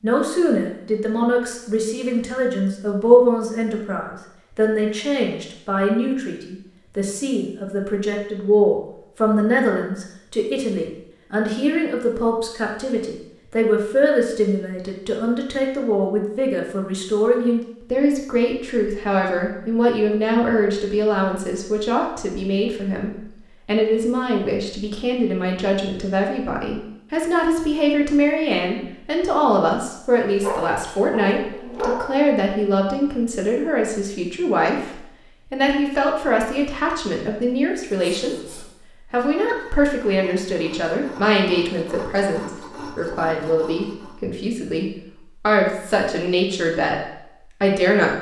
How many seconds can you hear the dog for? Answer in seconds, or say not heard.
2 s.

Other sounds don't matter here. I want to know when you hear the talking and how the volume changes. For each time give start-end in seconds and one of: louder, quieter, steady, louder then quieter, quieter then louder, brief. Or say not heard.
0.0-48.1 steady.